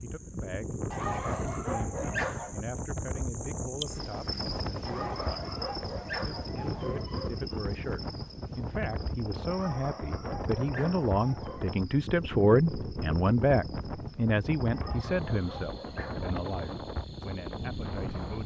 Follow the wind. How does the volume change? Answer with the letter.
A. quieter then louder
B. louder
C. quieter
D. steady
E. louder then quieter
D.